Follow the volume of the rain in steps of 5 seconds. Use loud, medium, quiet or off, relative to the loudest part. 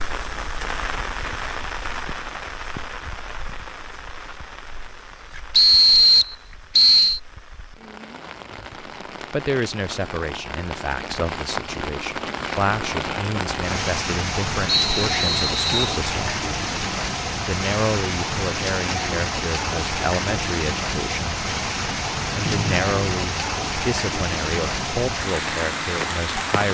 medium, quiet, loud, loud, loud, loud.